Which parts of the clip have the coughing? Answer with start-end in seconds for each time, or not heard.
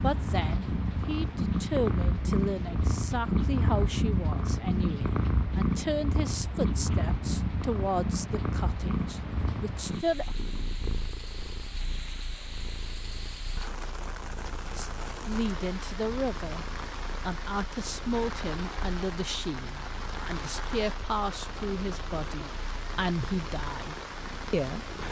not heard.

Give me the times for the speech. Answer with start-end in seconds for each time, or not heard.
0.0-10.3, 14.7-24.9.